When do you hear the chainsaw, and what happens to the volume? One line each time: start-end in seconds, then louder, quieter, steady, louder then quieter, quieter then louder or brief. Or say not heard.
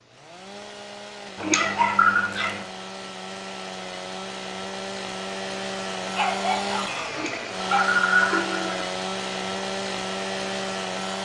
0.0-11.2 louder.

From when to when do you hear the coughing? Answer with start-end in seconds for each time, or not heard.
1.4-2.3, 7.2-8.8.